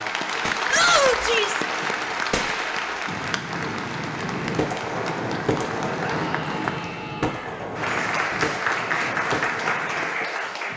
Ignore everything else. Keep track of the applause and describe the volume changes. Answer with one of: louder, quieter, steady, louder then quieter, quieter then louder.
quieter then louder.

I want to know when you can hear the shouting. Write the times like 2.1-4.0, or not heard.
0.7-1.6, 6.2-7.7.